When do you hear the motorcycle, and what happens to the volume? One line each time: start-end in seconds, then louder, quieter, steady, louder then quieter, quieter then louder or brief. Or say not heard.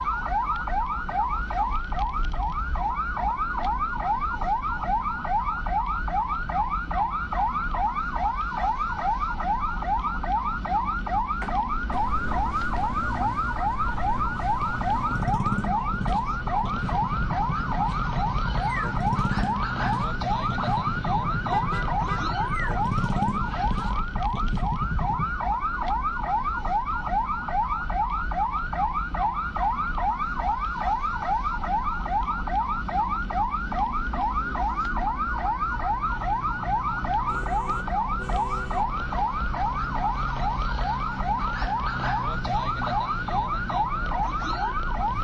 11.9-25.3 louder.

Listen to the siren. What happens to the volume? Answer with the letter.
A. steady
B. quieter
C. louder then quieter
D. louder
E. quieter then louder
A.